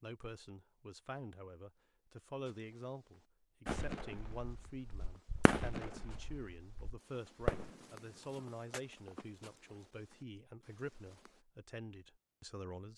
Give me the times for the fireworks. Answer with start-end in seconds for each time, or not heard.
3.6-8.8.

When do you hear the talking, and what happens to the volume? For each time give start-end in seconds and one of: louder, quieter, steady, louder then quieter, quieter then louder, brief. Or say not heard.
0.0-12.9 steady.